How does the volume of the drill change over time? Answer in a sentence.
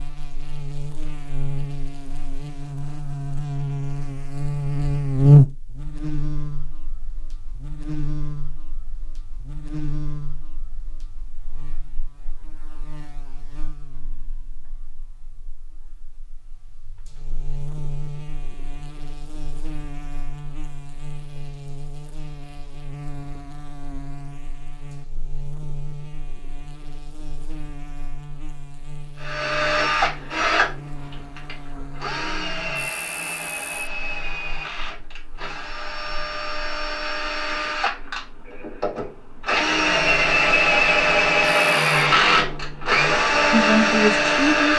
The loudness of the drill goes down, then up.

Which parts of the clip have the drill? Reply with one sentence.
The drill can be heard from 29.2 to 44.7 s.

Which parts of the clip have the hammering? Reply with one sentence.
You can't hear the hammering here.